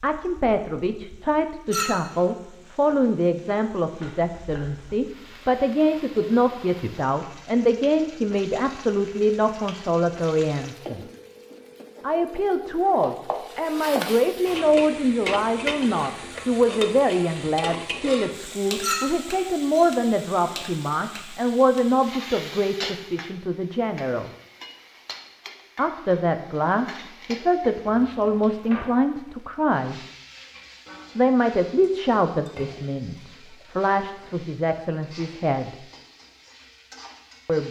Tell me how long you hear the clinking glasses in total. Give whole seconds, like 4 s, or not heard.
4 s.